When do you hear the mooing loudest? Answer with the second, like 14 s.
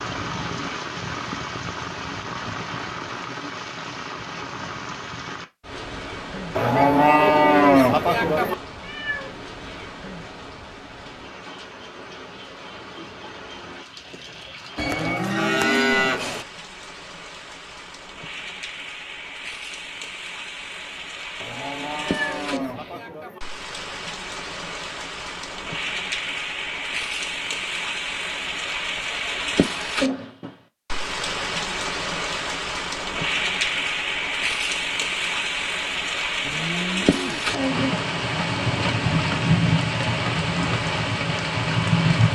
8 s.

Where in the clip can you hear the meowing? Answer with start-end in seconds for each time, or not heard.
8.8-9.8, 21.9-22.9.